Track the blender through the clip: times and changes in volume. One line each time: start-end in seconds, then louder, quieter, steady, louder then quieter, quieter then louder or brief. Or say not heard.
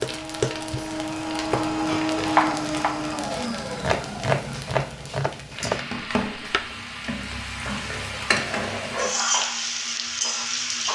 0.0-10.8 quieter.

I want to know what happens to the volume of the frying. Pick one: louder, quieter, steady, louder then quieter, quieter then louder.
louder.